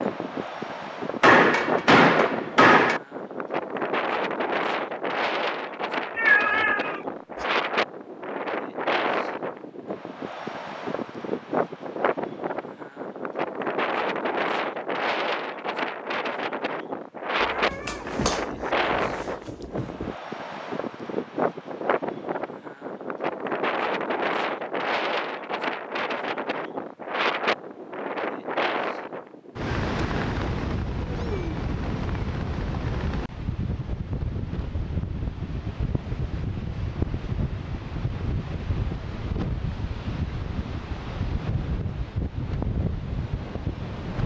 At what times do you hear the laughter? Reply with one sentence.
You can't hear the laughter here.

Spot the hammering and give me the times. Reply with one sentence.
The hammering can be heard from 1.2 to 3.0 s.